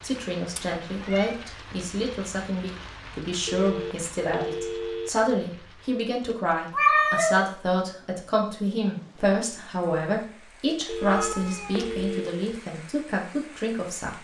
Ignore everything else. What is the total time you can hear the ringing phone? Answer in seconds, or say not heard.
3 s.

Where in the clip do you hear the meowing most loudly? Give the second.
7 s.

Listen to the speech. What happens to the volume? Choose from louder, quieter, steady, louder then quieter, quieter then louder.
steady.